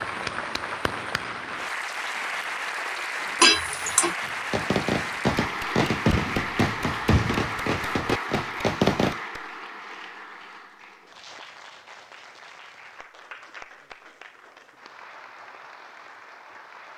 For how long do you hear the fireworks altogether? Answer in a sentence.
The fireworks can be heard for 5 seconds in total.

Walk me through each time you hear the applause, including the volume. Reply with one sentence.
You can hear the applause from 0.0 to 16.9 s, getting quieter.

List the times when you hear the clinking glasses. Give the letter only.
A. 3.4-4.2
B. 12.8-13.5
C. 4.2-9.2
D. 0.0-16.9
A.